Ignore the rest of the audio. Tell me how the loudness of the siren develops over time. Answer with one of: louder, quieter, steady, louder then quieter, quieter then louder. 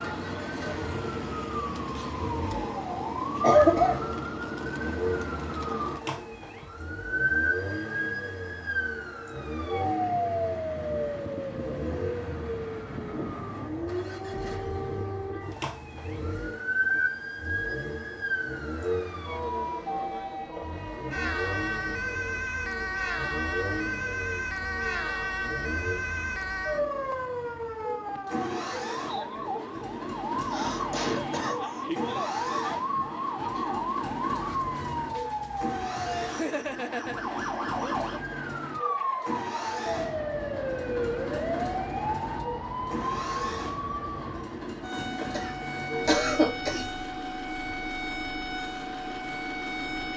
steady.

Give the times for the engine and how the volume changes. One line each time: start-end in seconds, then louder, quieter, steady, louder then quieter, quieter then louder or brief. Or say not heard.
0.0-50.1 steady.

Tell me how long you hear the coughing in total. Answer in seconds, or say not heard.
4 s.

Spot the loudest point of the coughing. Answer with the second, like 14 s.
4 s.